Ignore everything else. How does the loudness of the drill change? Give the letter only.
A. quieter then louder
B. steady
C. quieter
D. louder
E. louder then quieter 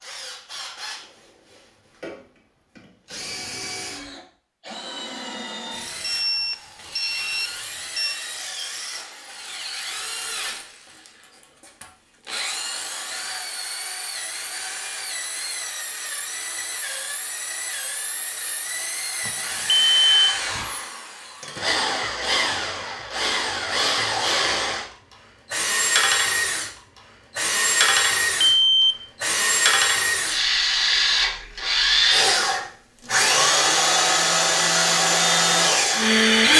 D.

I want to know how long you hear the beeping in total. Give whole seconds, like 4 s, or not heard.
4 s.